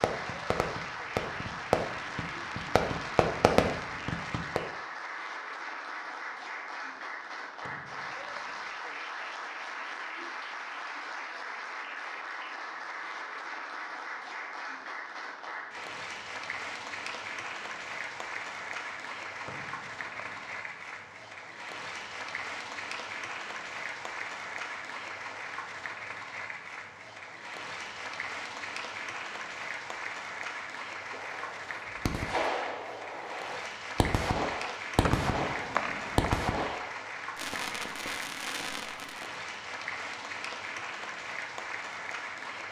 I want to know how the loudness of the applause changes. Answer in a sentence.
The loudness of the applause stays about the same.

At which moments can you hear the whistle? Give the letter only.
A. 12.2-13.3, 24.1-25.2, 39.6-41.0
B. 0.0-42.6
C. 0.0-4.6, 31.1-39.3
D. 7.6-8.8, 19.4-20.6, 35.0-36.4
D.